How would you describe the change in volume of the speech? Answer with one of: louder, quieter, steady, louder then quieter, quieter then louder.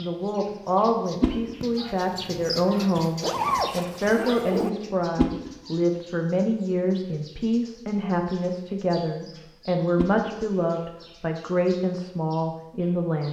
steady.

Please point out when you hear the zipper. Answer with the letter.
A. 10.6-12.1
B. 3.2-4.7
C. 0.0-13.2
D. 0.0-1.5
B.